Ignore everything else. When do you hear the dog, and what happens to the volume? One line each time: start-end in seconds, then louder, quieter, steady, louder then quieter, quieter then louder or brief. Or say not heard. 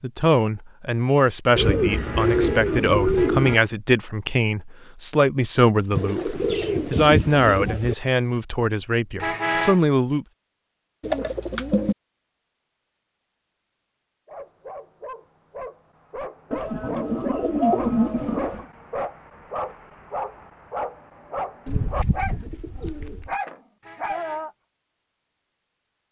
14.2-24.5 louder.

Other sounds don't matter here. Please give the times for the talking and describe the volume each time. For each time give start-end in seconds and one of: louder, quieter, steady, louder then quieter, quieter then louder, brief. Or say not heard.
0.0-10.2 steady.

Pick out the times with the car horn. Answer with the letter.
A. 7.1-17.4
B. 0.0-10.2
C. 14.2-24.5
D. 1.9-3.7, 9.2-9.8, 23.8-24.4
D.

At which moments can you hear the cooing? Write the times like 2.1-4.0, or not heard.
1.6-3.5, 6.0-8.0, 11.0-11.9, 16.5-18.6, 21.6-23.3.